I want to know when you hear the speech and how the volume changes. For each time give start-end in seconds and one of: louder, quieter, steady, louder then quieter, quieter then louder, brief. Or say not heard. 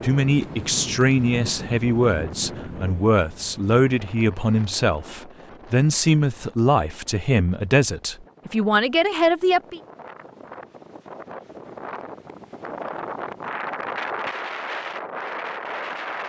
0.0-9.8 steady.